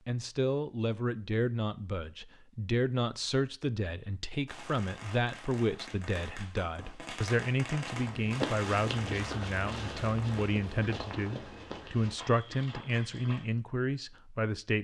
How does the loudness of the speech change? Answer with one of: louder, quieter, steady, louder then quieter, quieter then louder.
steady.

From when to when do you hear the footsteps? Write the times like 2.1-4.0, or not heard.
8.0-13.5.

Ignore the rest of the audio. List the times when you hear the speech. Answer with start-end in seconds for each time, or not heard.
0.1-14.8.